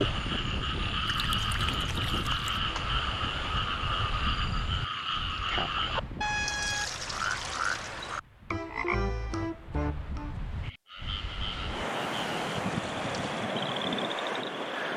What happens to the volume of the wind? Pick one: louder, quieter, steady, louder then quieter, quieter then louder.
quieter then louder.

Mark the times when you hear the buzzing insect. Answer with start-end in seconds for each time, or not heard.
not heard.